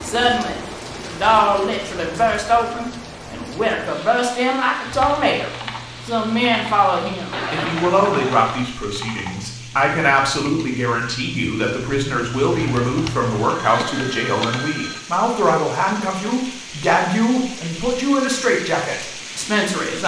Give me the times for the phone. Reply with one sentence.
You can hear the phone from 7.3 to 8.3 s and from 12.5 to 15.1 s.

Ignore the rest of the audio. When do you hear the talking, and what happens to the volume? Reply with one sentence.
The talking can be heard from 0.0 to 20.0 s, at a steady volume.